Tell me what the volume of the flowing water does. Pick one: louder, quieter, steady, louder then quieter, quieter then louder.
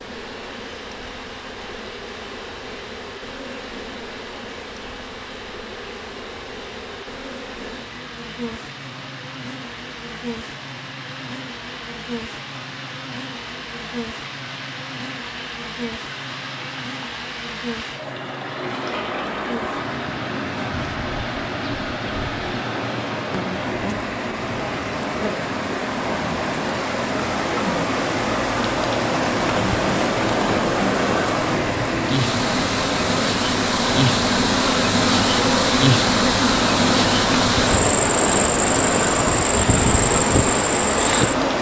louder.